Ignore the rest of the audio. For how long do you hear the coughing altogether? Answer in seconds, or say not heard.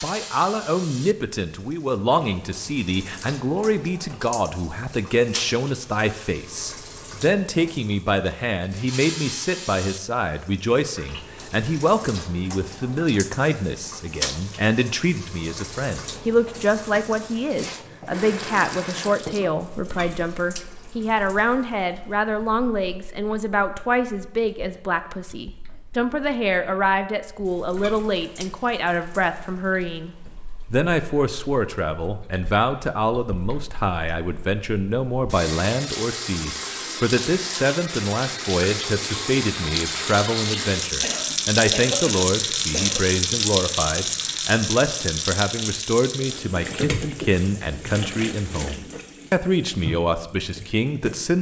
2 s.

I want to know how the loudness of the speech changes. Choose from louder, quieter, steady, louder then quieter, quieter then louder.
steady.